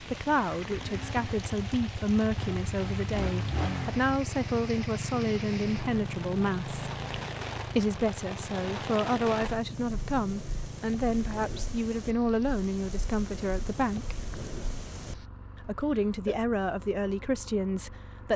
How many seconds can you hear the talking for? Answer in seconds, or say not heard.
16 s.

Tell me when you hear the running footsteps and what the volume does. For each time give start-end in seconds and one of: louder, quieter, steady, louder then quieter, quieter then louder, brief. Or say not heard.
not heard.